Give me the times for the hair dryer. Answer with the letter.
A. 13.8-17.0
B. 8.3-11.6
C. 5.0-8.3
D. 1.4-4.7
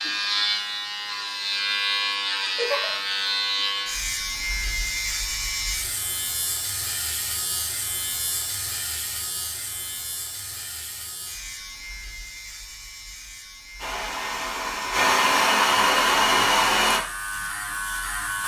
A.